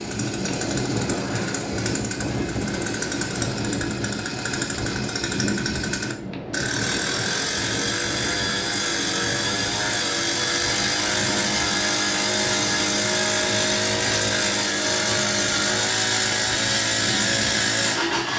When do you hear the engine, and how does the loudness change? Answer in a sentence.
The engine can be heard from 0.0 to 18.3 s, getting louder.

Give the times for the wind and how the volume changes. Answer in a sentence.
You can hear the wind from 0.0 to 18.3 s, getting quieter.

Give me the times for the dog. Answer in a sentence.
You can't hear the dog here.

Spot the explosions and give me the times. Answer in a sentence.
You can't hear the explosions here.